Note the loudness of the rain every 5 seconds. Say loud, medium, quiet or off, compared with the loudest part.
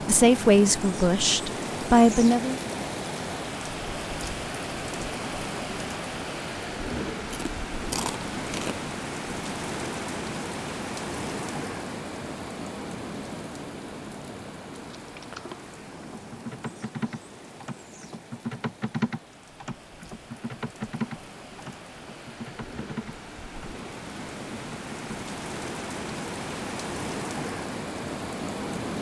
loud, loud, loud, quiet, medium, loud.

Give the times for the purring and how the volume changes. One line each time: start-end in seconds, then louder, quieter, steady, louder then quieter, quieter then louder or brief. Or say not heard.
not heard.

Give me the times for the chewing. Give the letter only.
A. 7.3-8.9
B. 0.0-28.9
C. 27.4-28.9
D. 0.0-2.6
A.